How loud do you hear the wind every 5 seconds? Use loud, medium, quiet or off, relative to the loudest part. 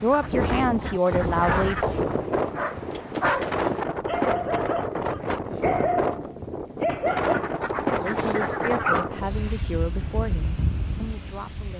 loud, loud, medium.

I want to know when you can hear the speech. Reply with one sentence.
You can hear the speech from 0.0 to 1.8 s and from 8.0 to 11.7 s.